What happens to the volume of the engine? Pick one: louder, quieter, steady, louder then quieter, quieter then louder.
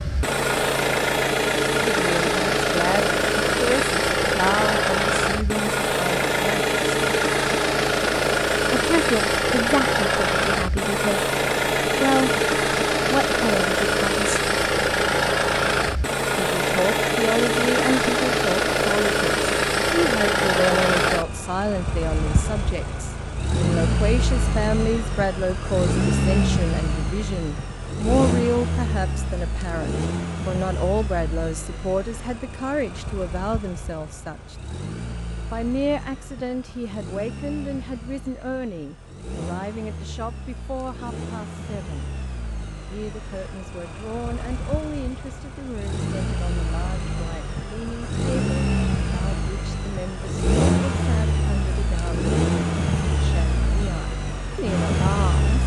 quieter then louder.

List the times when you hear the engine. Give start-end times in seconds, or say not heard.
0.0-55.6.